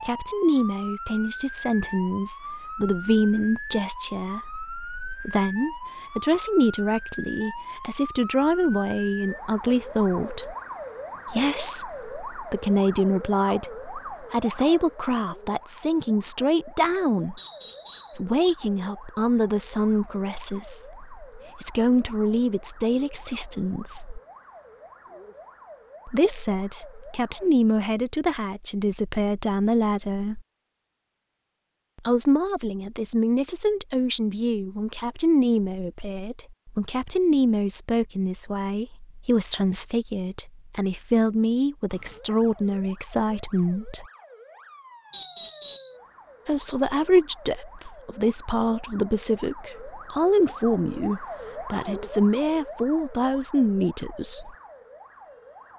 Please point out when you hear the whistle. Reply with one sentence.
The whistle can be heard from 17.4 to 18.2 s and from 45.1 to 46.0 s.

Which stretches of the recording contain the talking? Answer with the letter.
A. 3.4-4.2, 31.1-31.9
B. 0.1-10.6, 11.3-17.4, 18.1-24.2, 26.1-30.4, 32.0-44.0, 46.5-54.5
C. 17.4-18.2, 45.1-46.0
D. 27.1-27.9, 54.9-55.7
B.